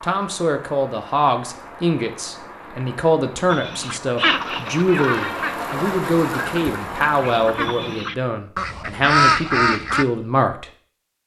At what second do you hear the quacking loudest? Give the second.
9 s.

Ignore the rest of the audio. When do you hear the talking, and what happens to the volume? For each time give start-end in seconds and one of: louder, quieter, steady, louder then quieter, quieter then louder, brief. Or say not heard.
0.0-10.7 steady.